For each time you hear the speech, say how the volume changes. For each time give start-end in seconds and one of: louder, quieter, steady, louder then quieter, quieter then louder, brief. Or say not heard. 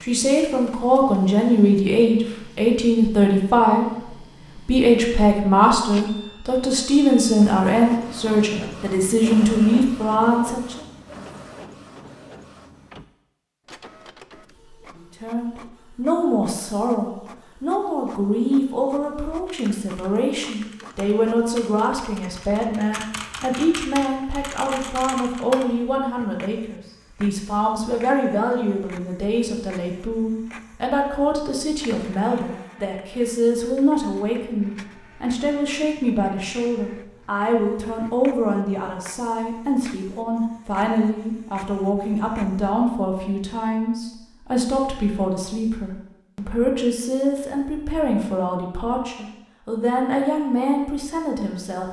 0.0-10.8 steady
14.9-51.8 steady.